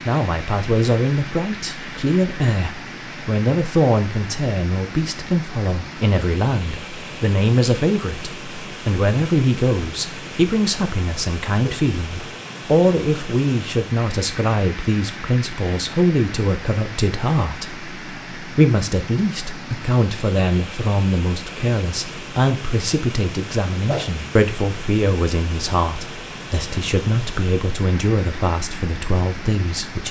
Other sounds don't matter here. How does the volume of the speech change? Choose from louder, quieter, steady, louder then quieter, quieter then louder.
steady.